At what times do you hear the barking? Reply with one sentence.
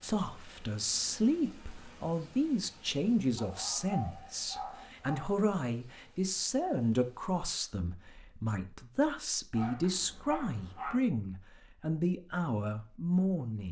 The barking can be heard from 3.4 to 5.3 s and from 9.5 to 11.0 s.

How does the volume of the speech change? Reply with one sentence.
The volume of the speech stays about the same.